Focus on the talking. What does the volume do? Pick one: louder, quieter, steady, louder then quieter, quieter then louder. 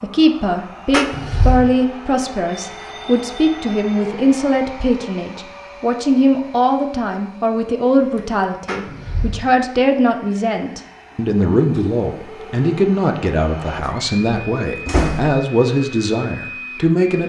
steady.